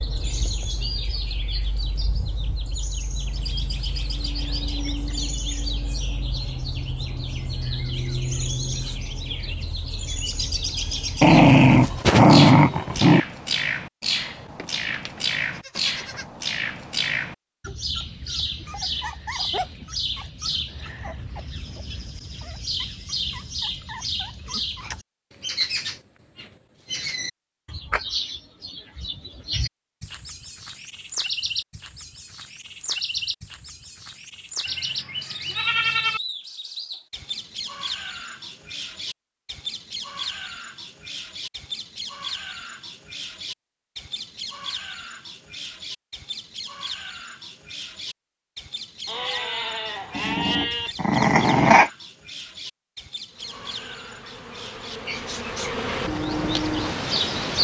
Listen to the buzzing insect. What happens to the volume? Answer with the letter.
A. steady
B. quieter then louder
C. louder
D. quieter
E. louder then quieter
C.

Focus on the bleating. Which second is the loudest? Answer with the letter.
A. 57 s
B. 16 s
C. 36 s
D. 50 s
C.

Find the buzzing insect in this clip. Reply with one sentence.
You can hear the buzzing insect from 53.3 to 57.5 s.